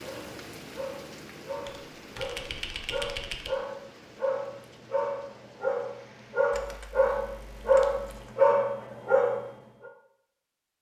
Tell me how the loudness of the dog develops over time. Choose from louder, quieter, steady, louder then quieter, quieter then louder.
louder.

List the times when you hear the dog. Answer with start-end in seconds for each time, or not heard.
0.0-9.4.